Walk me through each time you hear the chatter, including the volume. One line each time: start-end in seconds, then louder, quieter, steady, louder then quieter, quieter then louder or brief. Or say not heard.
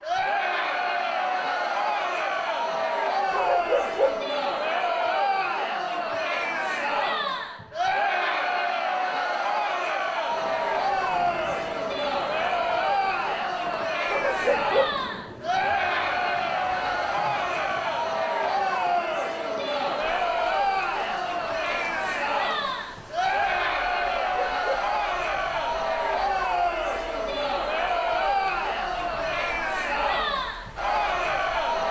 0.0-31.8 steady.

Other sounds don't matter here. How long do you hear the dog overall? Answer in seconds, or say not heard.
3 s.